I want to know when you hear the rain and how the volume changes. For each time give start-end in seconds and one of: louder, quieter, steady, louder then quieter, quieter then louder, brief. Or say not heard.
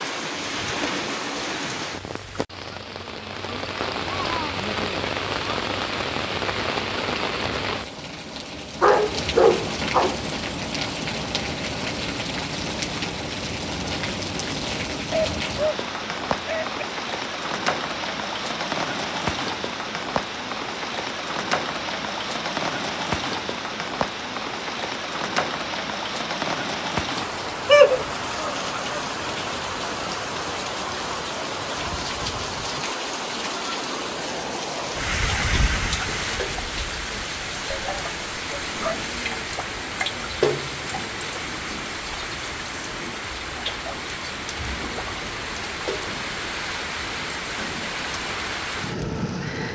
0.0-49.6 steady.